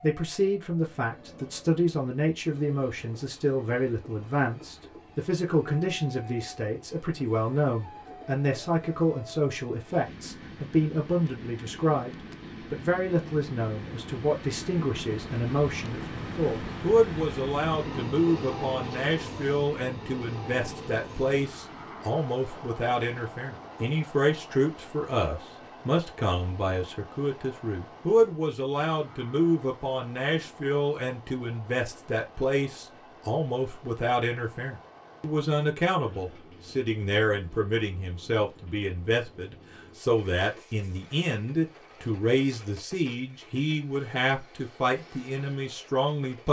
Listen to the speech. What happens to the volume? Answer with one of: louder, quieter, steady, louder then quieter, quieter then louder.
steady.